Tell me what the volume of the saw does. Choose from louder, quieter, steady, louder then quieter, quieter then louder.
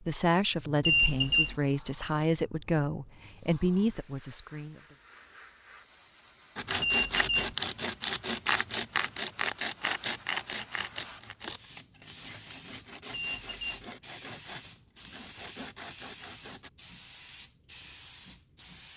quieter.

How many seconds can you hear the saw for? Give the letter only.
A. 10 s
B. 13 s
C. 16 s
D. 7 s
A.